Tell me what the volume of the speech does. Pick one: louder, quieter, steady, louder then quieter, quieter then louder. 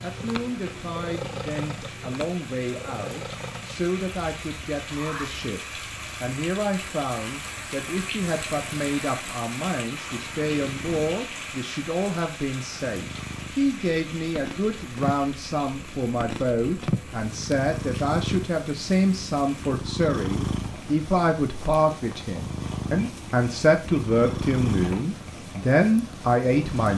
louder.